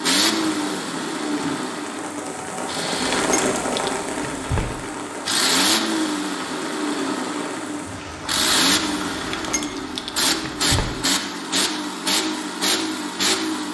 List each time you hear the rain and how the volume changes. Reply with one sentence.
You can hear the rain from 0.2 to 9.6 s, getting louder then quieter.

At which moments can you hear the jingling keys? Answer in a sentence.
You can hear the jingling keys from 3.1 to 4.8 s and from 9.2 to 10.9 s.